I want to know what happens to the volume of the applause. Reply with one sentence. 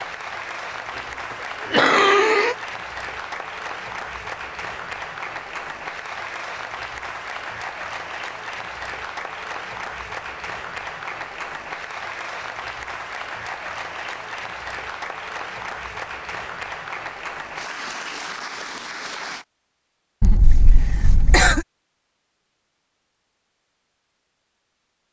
The loudness of the applause stays about the same.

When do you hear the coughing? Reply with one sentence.
You can hear the coughing from 1.7 to 2.5 s and from 20.2 to 21.6 s.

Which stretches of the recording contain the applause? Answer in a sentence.
The applause can be heard from 0.0 to 19.4 s.